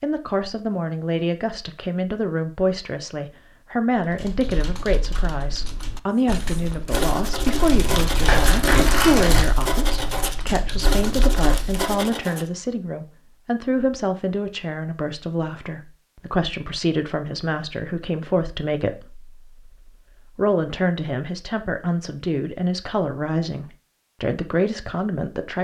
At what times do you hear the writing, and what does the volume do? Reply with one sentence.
The writing can be heard from 6.2 to 12.4 s, at a steady volume.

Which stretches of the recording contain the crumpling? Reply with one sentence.
The crumpling can be heard from 7.7 to 9.5 s.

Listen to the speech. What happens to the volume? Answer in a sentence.
The volume of the speech stays about the same.